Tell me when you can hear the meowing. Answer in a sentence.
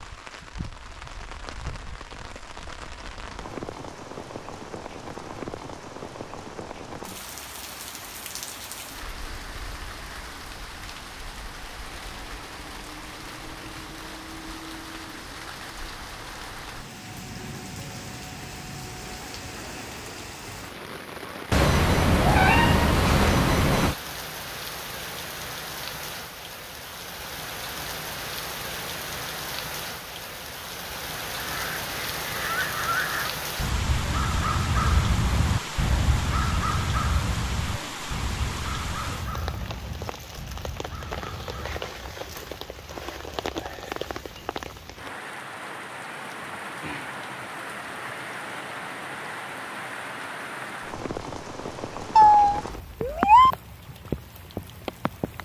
The meowing can be heard from 21.5 to 23.9 s and from 52.1 to 53.5 s.